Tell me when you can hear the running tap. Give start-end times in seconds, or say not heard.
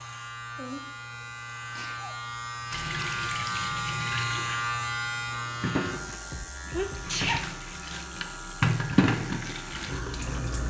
2.7-10.6.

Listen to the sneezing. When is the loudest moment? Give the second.
7 s.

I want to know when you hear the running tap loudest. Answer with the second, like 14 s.
9 s.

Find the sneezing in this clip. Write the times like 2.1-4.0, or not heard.
0.6-2.1, 6.7-7.5.